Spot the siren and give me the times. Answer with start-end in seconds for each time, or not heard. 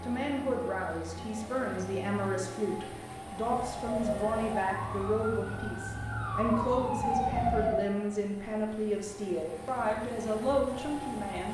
3.4-7.8.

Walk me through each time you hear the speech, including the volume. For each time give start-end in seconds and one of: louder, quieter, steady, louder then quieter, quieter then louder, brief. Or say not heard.
0.0-11.4 steady.